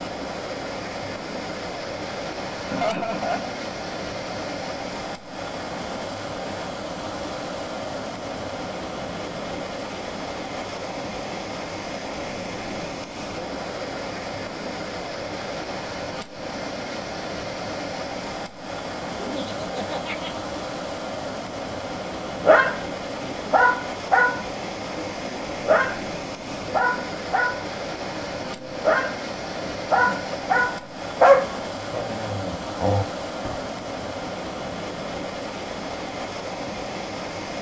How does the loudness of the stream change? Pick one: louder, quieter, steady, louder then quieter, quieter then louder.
steady.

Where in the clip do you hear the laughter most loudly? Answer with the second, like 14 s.
3 s.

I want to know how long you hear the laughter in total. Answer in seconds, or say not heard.
3 s.